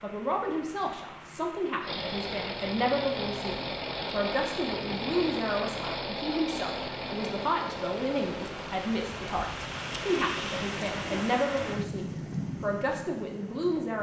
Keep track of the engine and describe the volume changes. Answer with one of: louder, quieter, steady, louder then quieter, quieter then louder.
quieter.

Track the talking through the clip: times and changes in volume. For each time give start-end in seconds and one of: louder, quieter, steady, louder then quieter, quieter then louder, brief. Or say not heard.
0.0-13.9 steady.